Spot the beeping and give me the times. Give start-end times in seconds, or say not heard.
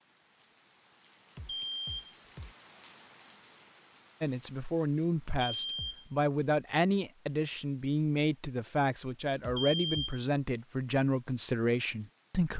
1.4-2.5, 5.4-6.0, 9.4-10.2.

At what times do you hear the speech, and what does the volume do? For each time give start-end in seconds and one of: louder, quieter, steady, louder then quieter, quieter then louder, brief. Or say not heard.
4.2-12.5 steady.